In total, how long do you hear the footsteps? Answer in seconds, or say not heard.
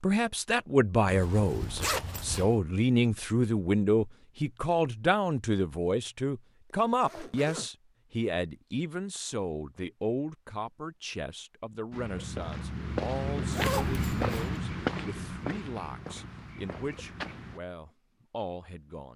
6 s.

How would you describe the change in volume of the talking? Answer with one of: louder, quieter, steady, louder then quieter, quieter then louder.
quieter.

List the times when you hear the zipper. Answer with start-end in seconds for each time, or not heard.
1.1-2.5, 6.9-7.7, 13.5-14.3.